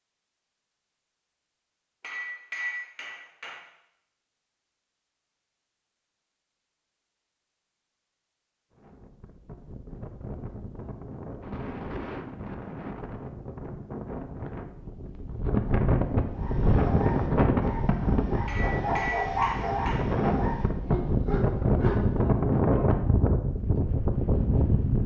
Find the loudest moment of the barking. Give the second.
19 s.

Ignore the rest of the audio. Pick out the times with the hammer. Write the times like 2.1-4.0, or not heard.
2.0-3.6, 18.4-20.0.